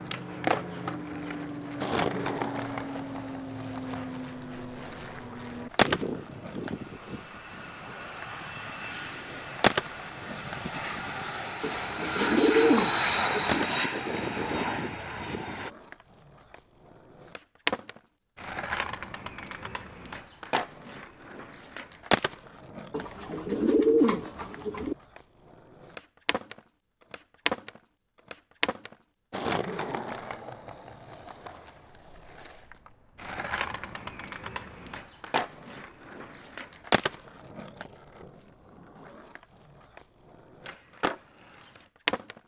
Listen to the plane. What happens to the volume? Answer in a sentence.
The loudness of the plane goes up.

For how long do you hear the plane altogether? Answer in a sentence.
The plane can be heard for 16 seconds in total.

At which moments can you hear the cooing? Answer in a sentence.
The cooing can be heard from 11.6 to 13.7 s and from 22.9 to 24.9 s.